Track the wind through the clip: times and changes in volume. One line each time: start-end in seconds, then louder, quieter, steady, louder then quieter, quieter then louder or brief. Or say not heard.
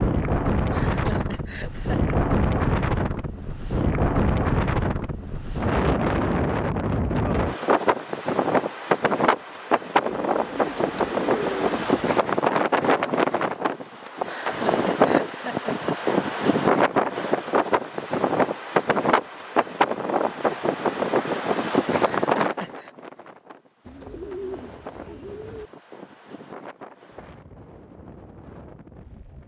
0.0-29.4 quieter.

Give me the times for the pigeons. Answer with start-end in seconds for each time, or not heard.
10.2-12.1, 23.9-25.7.